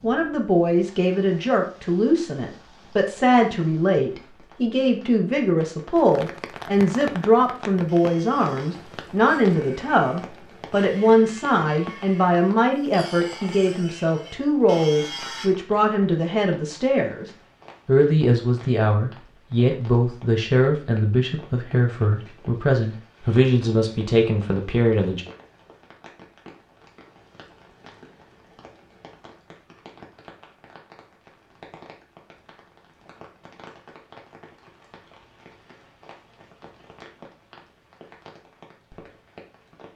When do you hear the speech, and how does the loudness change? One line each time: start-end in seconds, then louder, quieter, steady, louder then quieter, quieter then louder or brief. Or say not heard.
0.0-25.2 steady.